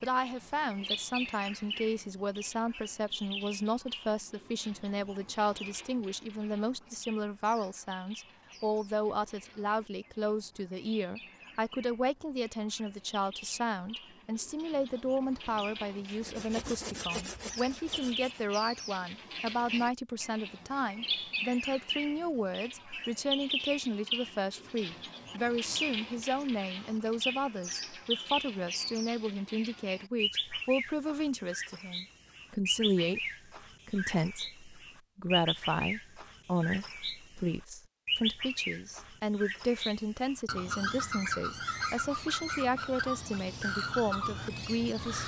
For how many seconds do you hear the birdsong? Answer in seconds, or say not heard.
45 s.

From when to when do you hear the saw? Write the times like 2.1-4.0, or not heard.
16.1-18.4.